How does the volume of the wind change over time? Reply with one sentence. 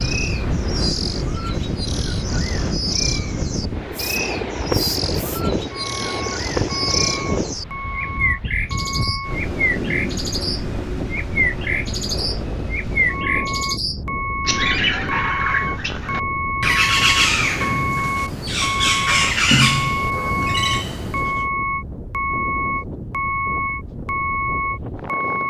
The loudness of the wind goes down.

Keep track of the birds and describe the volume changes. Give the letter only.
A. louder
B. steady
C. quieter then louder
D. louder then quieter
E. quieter
A.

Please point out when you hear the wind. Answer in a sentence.
You can hear the wind from 0.0 to 25.4 s.